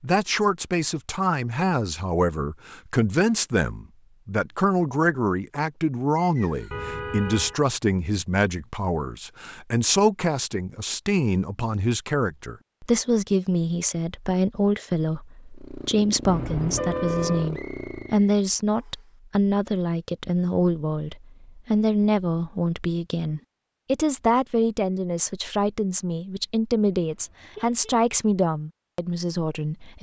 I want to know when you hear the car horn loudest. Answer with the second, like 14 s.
17 s.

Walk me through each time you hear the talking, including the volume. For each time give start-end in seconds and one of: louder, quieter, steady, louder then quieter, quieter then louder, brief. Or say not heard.
0.0-29.9 steady.